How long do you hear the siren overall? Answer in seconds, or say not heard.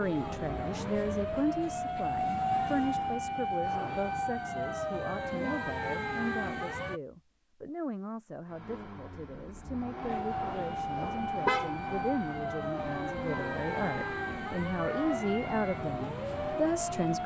14 s.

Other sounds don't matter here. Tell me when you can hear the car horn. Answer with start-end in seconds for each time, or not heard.
3.6-4.2, 10.3-11.8.